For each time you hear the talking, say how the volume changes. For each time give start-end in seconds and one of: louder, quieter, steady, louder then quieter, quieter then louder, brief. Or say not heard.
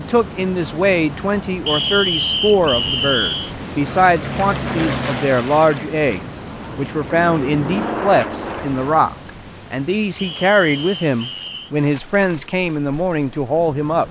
0.0-14.0 steady.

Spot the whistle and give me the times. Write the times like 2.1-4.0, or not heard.
1.6-3.5, 10.2-11.7.